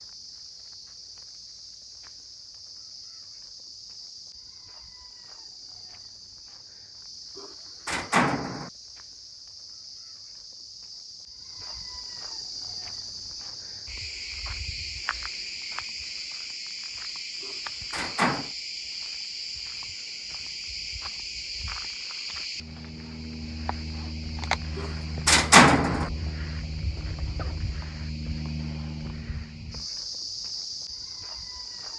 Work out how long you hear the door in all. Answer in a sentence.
You can hear the door for 4 seconds altogether.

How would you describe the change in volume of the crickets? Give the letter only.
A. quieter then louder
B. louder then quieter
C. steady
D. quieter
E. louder
E.